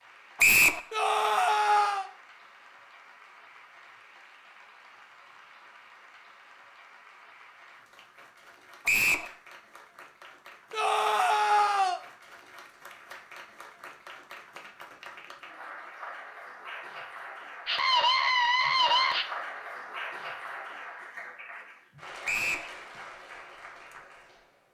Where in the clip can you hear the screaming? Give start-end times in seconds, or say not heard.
0.9-2.0, 10.7-12.0, 17.6-19.2.